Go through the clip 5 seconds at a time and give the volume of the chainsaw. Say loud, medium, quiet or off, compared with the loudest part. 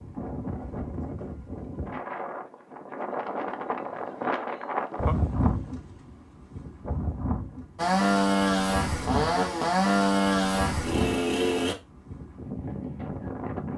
off, loud, loud.